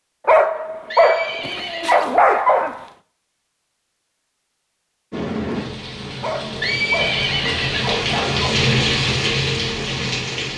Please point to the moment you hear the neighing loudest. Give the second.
7 s.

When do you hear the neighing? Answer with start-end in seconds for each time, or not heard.
0.8-2.0, 6.5-7.9.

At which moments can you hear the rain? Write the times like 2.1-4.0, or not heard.
5.1-10.5.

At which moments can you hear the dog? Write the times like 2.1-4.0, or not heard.
0.2-2.9, 6.2-8.6.